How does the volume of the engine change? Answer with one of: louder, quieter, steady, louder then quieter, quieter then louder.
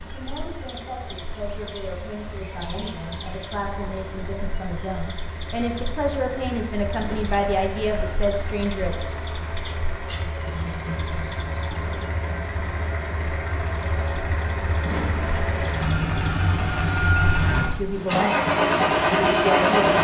louder.